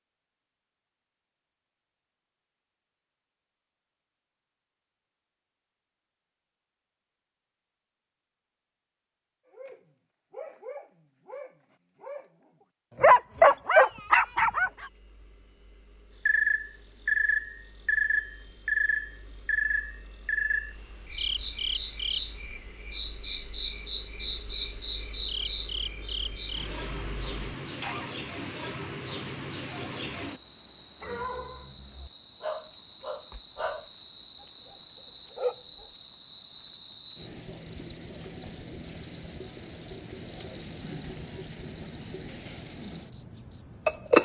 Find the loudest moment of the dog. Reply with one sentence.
The loudest moment of the dog is at 13 seconds.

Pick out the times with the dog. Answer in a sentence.
The dog can be heard from 9.5 to 14.8 s and from 31.0 to 35.9 s.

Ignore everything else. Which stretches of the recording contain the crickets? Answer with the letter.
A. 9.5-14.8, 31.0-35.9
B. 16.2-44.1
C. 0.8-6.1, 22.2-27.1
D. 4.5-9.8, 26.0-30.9
B.